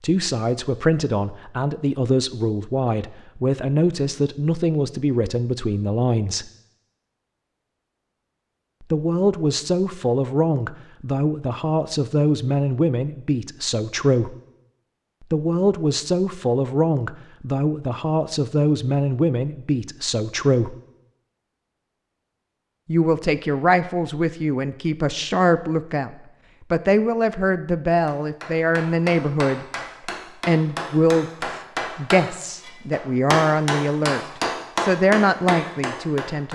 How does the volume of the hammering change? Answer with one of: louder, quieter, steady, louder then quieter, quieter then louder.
louder.